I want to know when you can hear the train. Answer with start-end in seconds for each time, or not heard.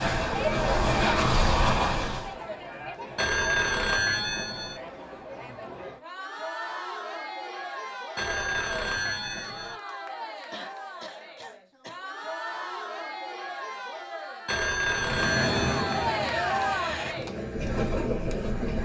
0.0-2.4, 14.9-18.8.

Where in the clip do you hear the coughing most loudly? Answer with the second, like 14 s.
11 s.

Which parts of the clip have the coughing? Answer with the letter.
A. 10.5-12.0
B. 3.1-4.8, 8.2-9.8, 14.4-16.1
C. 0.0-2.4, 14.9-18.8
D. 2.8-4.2
A.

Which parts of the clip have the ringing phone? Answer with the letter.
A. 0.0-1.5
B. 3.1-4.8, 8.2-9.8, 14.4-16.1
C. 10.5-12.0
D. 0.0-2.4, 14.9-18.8
B.